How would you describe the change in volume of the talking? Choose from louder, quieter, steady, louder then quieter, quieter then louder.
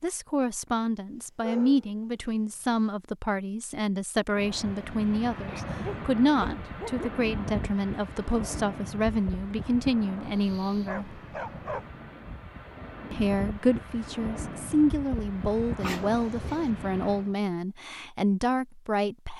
steady.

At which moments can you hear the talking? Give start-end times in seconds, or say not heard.
0.0-11.1, 13.1-19.3.